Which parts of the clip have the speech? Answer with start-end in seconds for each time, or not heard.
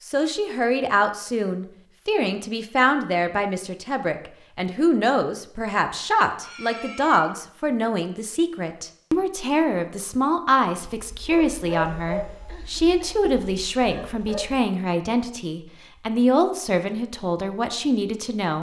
0.1-18.5.